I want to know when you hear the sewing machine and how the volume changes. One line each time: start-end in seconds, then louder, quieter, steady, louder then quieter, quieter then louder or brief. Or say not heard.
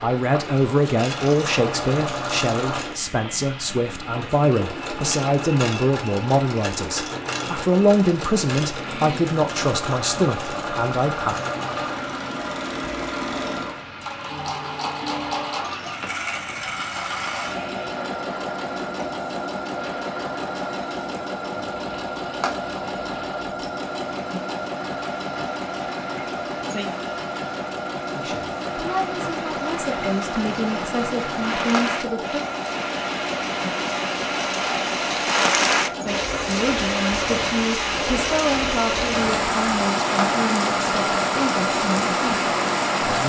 0.2-43.2 steady.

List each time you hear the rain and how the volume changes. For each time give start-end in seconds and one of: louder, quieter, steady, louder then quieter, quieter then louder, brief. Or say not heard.
0.0-43.2 louder.